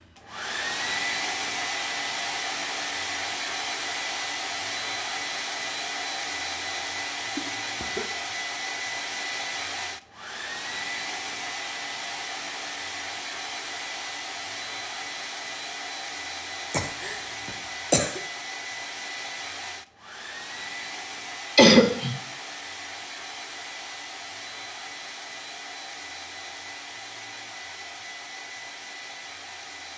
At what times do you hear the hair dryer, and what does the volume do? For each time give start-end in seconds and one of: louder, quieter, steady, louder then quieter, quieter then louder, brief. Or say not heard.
0.0-29.9 quieter.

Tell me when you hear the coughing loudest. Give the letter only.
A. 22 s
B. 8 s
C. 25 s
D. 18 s
A.